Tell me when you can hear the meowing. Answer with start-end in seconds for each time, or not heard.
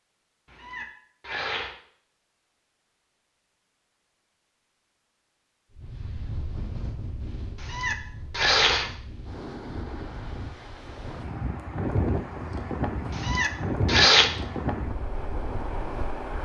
0.5-1.8, 7.6-8.9, 13.2-14.3.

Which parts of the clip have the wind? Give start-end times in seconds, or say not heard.
5.8-16.3.